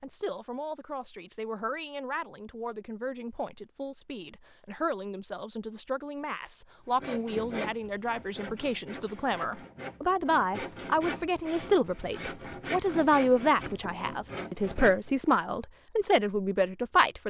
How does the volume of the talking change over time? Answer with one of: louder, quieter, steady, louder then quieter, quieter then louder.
louder.